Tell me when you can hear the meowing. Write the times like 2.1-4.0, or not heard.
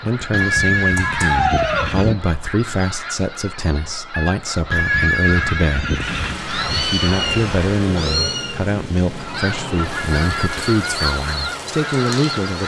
0.9-1.9, 6.5-8.6.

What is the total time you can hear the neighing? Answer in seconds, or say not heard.
4 s.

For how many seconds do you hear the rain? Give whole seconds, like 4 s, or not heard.
7 s.